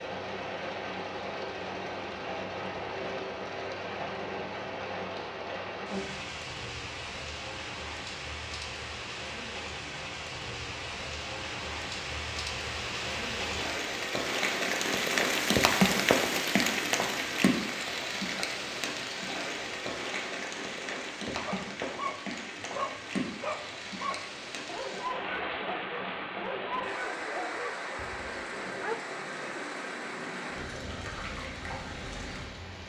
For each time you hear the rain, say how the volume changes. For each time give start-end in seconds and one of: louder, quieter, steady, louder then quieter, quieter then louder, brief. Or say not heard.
0.0-32.8 louder then quieter.